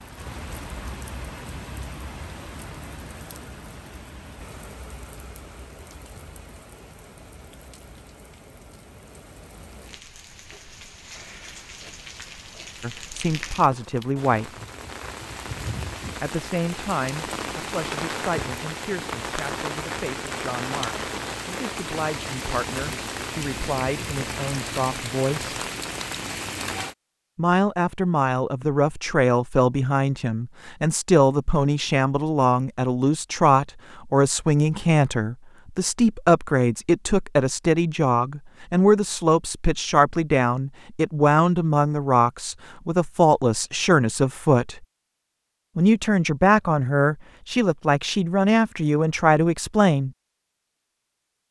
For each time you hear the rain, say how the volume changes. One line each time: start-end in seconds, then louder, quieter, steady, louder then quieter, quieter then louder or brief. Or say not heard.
0.0-26.9 quieter then louder.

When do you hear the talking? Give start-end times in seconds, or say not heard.
12.8-14.5, 16.2-25.6, 27.4-44.8, 45.8-50.1.